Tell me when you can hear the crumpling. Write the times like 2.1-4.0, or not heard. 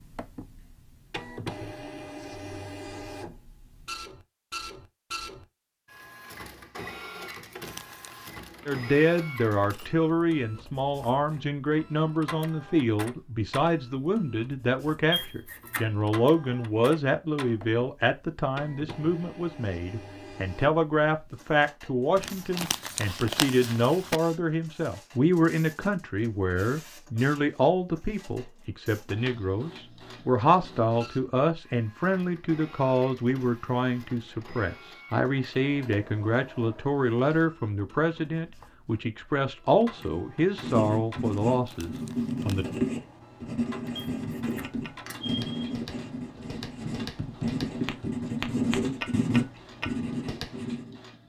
7.2-8.4, 22.1-24.2, 41.2-42.8.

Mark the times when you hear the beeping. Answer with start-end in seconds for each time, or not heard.
15.1-15.8, 44.0-45.8.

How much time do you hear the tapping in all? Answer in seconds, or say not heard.
6 s.